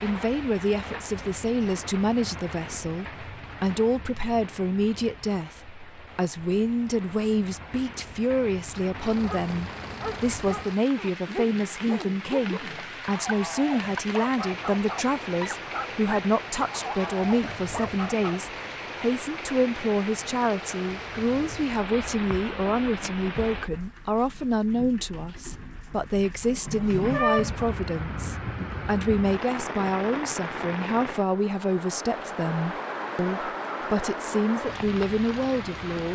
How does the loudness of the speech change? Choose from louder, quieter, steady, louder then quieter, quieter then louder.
steady.